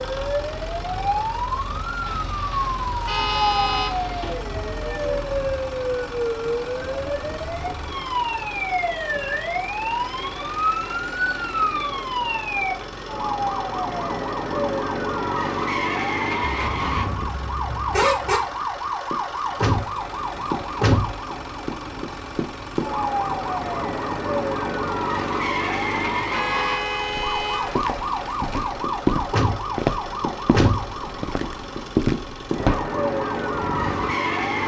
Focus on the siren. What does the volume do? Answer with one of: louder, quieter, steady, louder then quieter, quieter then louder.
steady.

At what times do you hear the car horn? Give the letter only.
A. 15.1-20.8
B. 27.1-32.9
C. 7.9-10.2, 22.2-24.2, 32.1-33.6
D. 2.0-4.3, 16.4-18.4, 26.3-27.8
D.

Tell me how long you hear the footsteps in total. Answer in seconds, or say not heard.
6 s.